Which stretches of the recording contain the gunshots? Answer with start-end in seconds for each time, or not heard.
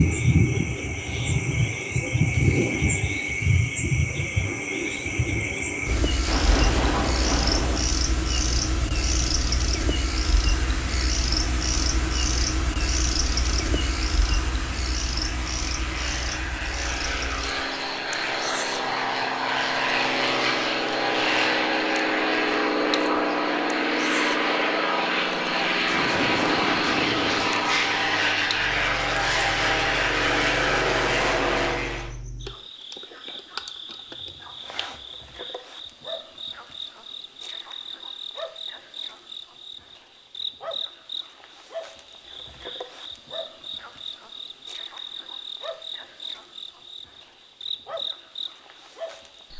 6.2-7.8, 25.9-27.5.